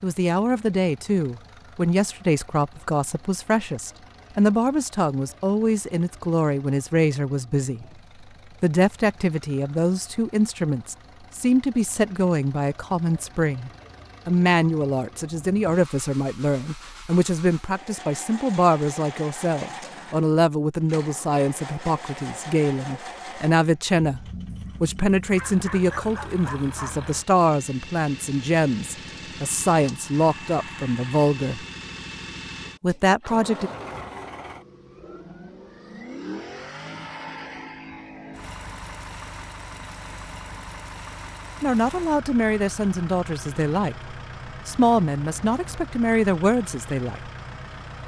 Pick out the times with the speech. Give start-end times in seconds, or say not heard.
0.0-7.8, 8.6-24.2, 24.8-31.6, 32.8-33.7, 41.6-47.2.